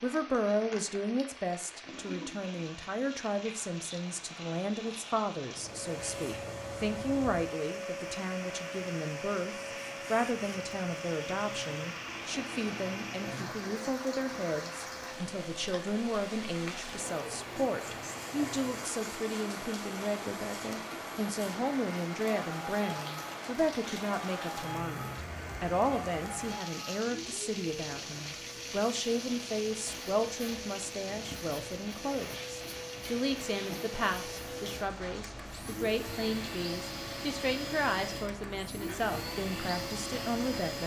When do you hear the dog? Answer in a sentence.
The dog can't be heard in this clip.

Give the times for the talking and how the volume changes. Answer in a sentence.
You can hear the talking from 0.0 to 40.8 s, at a steady volume.